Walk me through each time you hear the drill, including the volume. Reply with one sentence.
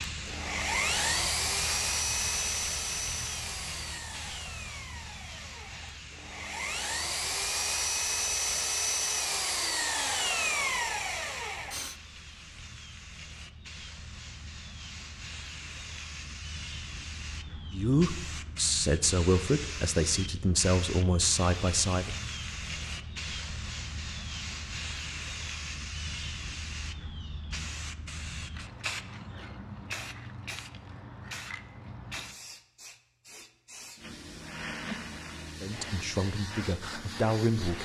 The drill can be heard from 0.1 to 11.9 s, getting quieter then louder.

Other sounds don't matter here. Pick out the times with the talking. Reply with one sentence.
You can hear the talking from 17.7 to 22.1 s and from 35.6 to 37.8 s.